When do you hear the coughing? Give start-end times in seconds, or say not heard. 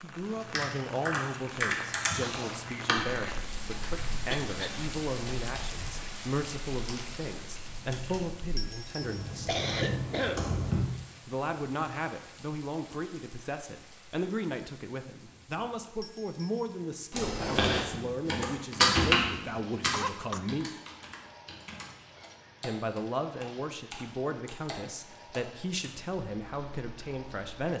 4.3-4.8, 9.4-10.4, 19.8-20.4.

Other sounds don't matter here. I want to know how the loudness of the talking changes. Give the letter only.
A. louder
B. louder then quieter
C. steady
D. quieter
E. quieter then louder
C.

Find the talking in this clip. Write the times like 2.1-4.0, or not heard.
0.0-9.6, 11.2-20.7, 22.6-27.7.